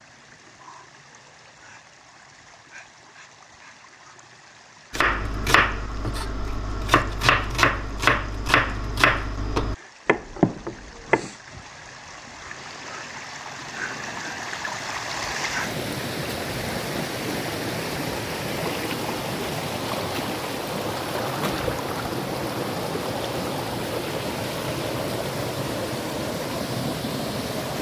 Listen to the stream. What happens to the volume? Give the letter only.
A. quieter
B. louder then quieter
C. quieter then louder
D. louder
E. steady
D.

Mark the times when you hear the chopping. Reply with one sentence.
The chopping can be heard from 4.9 to 11.3 s.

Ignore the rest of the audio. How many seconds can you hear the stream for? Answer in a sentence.
The stream can be heard for 28 seconds in total.